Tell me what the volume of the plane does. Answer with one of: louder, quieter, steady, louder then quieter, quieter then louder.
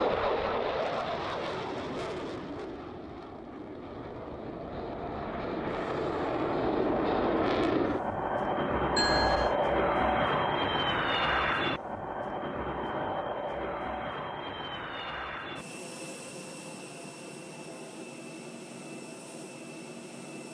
louder then quieter.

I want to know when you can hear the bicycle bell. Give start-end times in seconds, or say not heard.
8.9-9.6.